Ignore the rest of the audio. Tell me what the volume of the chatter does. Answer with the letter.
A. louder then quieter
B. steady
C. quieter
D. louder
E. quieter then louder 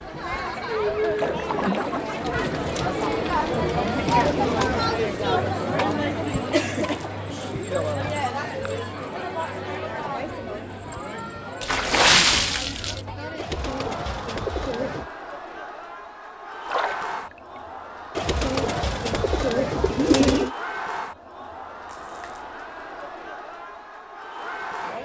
C.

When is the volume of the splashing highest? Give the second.
12 s.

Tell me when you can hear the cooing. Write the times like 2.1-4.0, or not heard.
2.1-4.8, 13.3-15.1, 18.1-20.6.